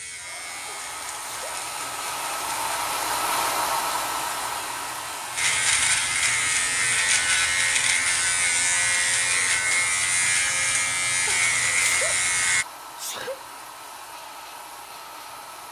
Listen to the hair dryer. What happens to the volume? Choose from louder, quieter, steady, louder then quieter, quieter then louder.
quieter.